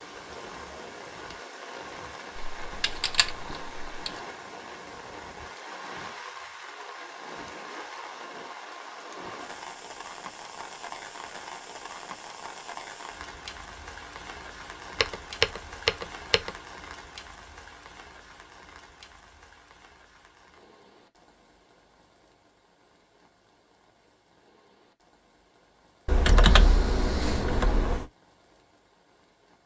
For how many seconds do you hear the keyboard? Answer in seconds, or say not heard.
5 s.